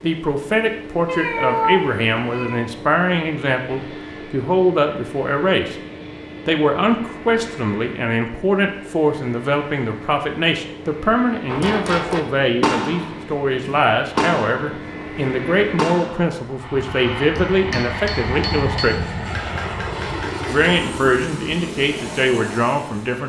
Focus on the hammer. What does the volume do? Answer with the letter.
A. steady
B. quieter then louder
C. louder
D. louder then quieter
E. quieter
E.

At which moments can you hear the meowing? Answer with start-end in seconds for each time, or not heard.
1.1-2.6.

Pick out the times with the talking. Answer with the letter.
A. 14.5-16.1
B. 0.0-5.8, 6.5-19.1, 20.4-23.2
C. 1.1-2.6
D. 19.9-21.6
B.